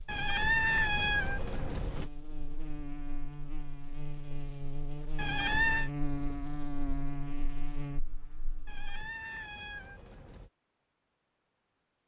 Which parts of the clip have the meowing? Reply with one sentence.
The meowing can be heard from 0.1 to 2.1 s, from 5.2 to 5.9 s and from 8.7 to 10.5 s.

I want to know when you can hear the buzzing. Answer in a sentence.
You can hear the buzzing from 0.0 to 8.8 s.